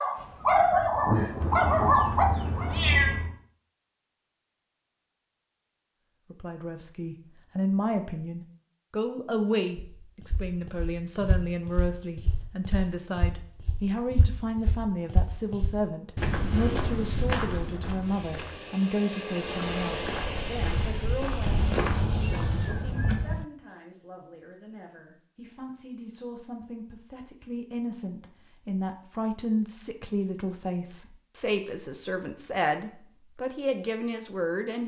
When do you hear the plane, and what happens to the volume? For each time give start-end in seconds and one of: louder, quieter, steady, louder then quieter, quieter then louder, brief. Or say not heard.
18.0-22.8 louder then quieter.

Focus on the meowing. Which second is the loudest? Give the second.
3 s.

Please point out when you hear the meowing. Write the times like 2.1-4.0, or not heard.
1.4-3.3, 22.2-23.2.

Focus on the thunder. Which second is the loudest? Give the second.
1 s.